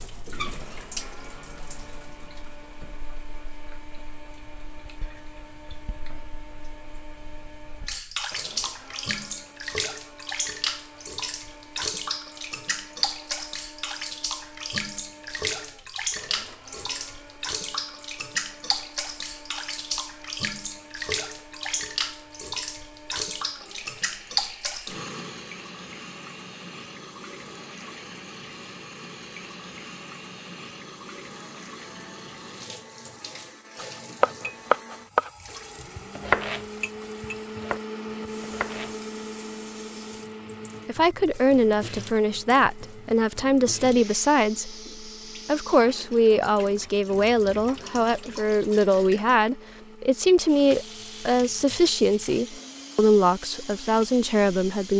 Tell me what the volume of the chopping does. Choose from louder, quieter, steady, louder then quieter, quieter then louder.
quieter then louder.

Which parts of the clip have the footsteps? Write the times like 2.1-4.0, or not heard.
not heard.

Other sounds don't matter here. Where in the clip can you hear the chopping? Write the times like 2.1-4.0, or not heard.
33.8-39.0.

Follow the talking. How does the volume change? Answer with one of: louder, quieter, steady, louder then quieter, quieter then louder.
steady.